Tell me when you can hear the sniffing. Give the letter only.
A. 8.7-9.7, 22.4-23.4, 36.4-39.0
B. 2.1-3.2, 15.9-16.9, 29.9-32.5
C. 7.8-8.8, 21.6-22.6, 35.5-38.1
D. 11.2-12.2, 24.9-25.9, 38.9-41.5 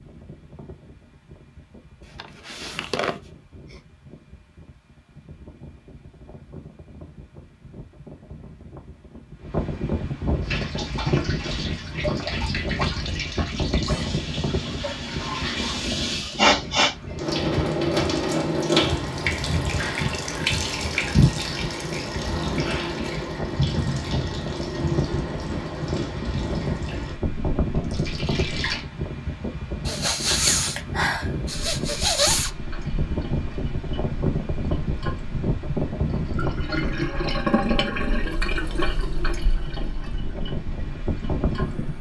B.